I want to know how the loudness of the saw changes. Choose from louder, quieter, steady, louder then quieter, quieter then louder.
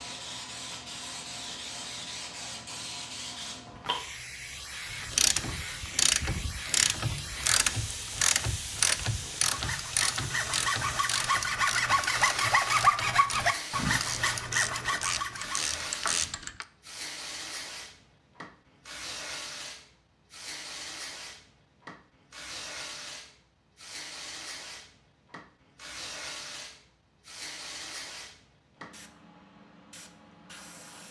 louder then quieter.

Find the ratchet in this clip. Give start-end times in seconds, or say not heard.
4.9-16.6.